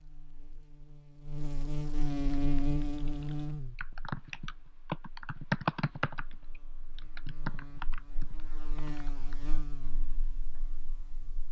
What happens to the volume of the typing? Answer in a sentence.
The loudness of the typing goes up, then down.